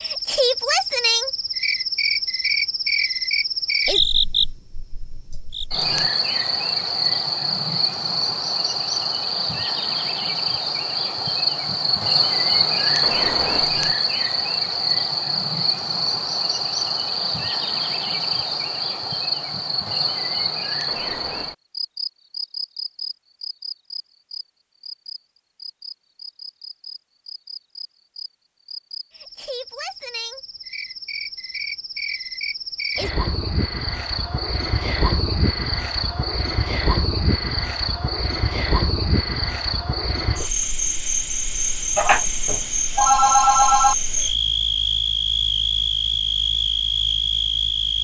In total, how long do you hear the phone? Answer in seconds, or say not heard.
2 s.